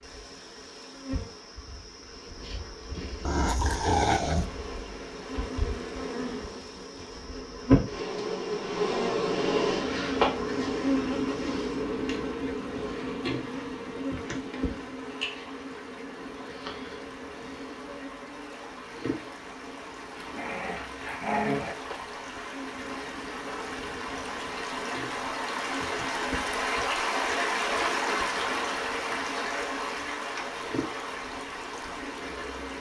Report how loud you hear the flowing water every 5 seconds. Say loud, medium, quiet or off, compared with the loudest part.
quiet, quiet, quiet, quiet, medium, loud, medium.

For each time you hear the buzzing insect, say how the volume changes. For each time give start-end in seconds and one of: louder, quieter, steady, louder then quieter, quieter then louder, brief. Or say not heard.
0.0-32.7 louder then quieter.